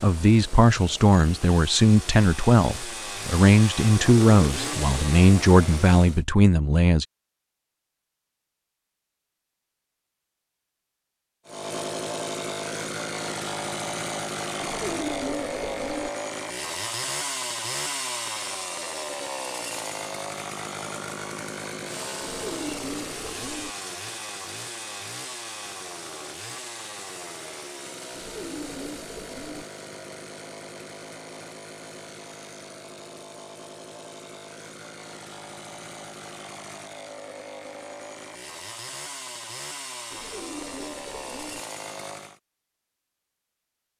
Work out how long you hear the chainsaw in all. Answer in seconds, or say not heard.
37 s.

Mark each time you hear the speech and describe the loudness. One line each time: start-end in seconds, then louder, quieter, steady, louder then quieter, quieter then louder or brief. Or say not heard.
0.0-7.0 steady.